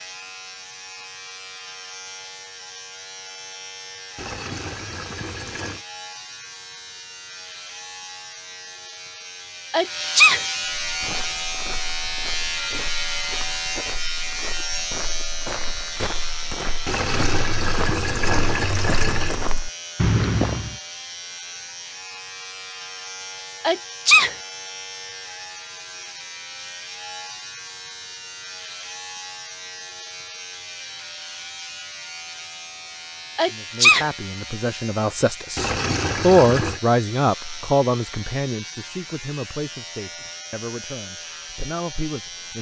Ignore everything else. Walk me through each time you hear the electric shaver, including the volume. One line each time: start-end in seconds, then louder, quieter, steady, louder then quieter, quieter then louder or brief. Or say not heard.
0.0-42.5 louder then quieter.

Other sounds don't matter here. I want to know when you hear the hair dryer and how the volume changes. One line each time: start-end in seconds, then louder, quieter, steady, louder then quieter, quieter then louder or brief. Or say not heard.
not heard.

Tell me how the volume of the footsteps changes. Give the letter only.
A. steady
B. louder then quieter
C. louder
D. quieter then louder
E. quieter
C.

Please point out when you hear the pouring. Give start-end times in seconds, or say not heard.
4.2-5.8, 16.9-19.4, 35.5-36.8.